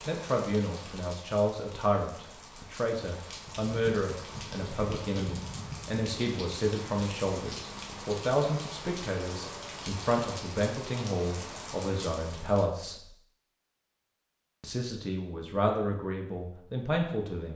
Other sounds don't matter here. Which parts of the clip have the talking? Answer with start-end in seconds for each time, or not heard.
0.1-13.1, 14.6-17.5.